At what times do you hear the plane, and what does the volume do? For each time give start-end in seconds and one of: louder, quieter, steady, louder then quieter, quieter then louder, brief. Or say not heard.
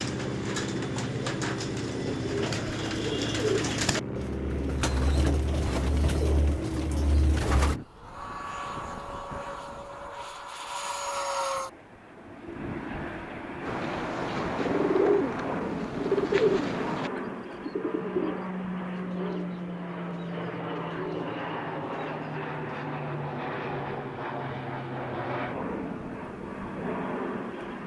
0.0-27.8 steady.